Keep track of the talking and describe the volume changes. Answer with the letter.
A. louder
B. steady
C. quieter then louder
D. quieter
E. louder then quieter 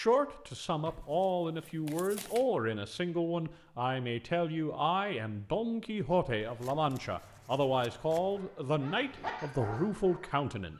B.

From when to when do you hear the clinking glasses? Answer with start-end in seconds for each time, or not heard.
not heard.